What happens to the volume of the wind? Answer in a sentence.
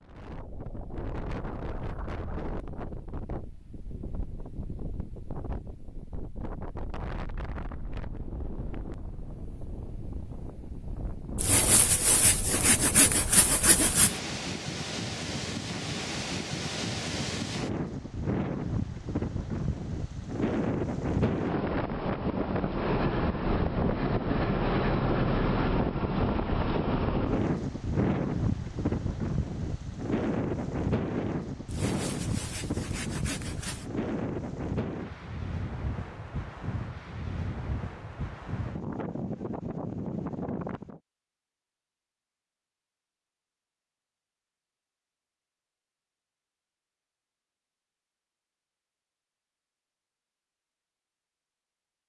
The volume of the wind goes up, then down.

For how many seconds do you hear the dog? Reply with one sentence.
The dog can't be heard in this clip.